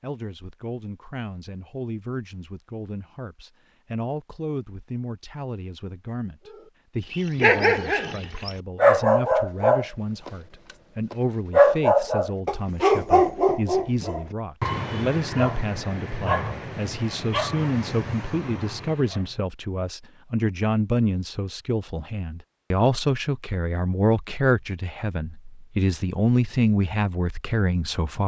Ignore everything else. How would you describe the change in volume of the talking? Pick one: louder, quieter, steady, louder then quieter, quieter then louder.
louder.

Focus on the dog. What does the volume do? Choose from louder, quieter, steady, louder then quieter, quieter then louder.
quieter.